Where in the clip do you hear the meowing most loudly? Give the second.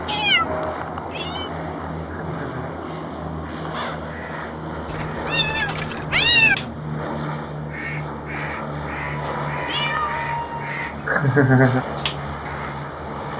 6 s.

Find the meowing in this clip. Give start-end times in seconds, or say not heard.
0.1-1.5, 4.8-6.5, 9.0-10.8.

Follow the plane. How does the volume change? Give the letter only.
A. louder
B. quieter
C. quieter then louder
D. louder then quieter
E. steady
E.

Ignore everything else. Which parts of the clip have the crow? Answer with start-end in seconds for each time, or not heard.
3.7-12.8.